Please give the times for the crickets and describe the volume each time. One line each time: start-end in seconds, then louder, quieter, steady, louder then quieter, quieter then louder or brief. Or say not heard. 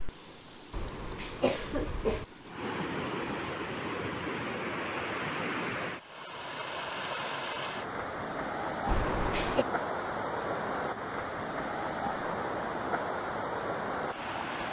0.0-10.5 quieter.